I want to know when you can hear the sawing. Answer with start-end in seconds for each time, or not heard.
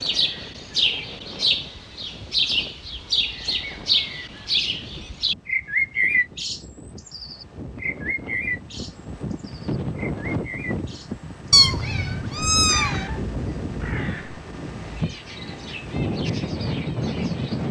not heard.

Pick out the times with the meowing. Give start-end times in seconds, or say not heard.
11.5-13.2.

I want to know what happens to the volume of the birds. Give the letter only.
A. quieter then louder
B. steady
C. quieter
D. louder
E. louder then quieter
C.